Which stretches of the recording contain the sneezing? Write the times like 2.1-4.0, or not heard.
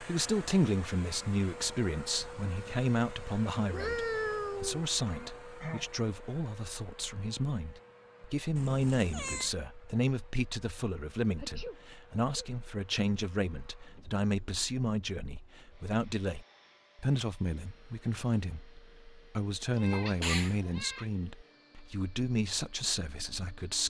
5.0-5.9, 11.3-12.5, 19.9-20.6.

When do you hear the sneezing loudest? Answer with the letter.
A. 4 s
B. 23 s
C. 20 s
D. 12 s
C.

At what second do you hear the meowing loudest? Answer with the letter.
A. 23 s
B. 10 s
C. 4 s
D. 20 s
C.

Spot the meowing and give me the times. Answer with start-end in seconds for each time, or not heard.
3.7-4.9, 8.6-9.5, 19.7-21.1.